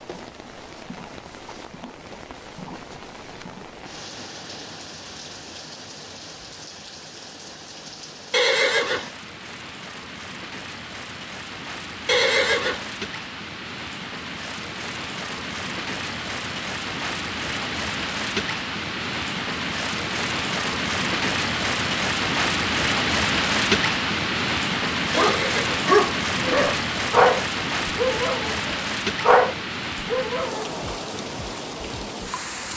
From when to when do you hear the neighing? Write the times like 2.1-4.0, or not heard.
8.3-9.1, 12.1-12.8, 25.1-25.8.